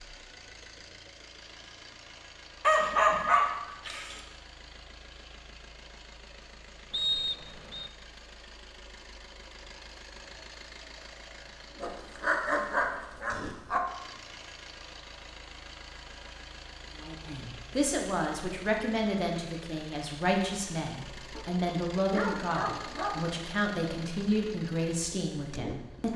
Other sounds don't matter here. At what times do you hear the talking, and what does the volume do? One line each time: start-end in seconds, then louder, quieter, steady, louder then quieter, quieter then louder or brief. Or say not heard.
16.9-26.1 steady.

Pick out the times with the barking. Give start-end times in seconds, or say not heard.
2.6-4.2, 11.8-13.8, 21.3-23.3.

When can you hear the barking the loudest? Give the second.
3 s.